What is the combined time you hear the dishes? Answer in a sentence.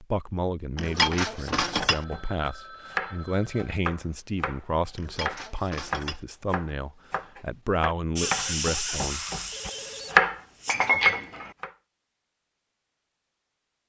The dishes can be heard for 3 seconds in total.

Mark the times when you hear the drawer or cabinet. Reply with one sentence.
You can't hear the drawer or cabinet here.